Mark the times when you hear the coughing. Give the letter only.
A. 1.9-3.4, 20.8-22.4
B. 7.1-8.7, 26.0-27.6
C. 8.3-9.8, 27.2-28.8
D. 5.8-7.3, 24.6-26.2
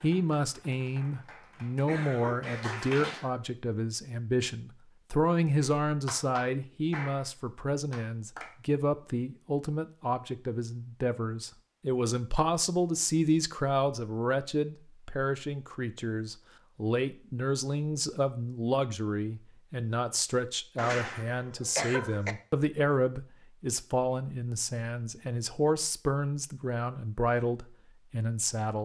A.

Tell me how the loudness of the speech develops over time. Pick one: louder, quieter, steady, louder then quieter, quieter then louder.
steady.